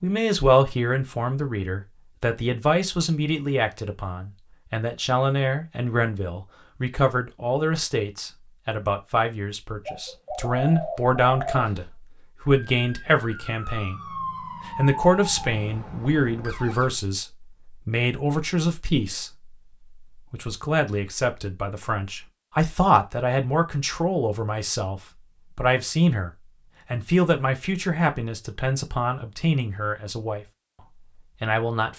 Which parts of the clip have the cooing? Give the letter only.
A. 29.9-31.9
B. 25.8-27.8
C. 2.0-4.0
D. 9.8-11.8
D.